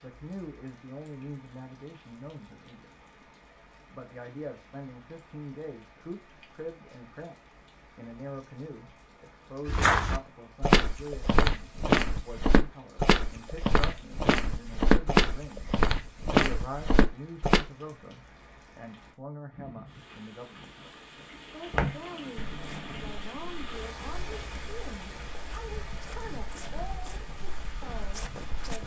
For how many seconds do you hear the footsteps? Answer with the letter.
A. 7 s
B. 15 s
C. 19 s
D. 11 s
B.